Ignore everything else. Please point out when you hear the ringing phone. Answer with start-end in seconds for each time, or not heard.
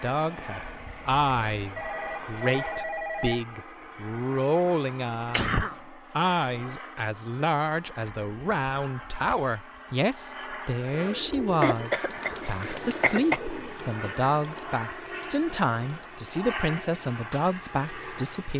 1.8-3.4.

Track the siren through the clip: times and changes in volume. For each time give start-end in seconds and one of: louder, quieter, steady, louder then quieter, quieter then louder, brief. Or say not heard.
not heard.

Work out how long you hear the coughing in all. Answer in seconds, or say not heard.
2 s.